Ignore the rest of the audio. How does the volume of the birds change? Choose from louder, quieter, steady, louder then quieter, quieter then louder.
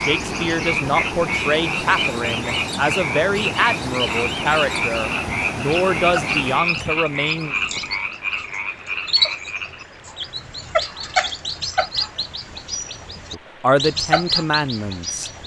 louder.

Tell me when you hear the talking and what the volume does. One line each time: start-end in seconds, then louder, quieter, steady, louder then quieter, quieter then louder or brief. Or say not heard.
0.0-7.5 steady
13.3-15.3 brief.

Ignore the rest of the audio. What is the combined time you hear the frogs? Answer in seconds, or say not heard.
10 s.